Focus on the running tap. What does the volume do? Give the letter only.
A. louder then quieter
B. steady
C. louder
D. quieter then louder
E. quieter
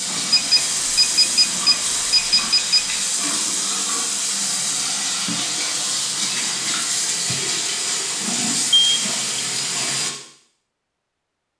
B.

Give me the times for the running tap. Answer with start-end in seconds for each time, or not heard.
0.0-10.1.